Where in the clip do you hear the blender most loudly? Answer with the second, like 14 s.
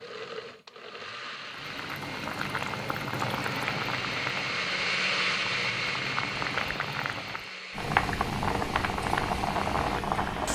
5 s.